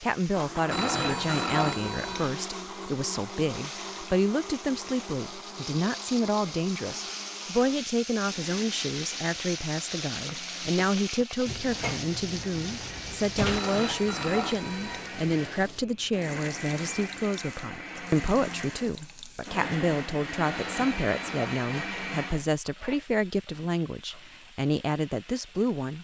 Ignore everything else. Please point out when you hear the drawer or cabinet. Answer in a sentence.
You can hear the drawer or cabinet from 11.4 to 13.7 s.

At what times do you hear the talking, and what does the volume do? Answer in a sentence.
The talking can be heard from 0.0 to 25.9 s, at a steady volume.